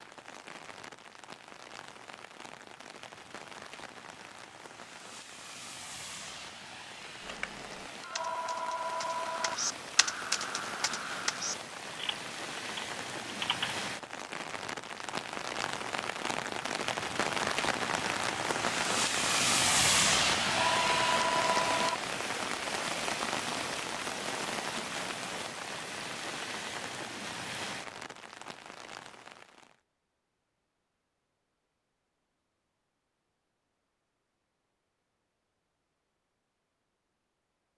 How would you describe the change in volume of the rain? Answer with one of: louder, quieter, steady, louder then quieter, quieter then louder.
louder then quieter.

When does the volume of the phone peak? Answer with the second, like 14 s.
21 s.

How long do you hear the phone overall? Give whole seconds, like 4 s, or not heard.
3 s.